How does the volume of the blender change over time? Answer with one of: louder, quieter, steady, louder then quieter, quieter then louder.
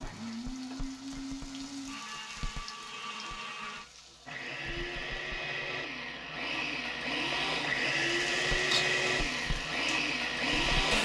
louder.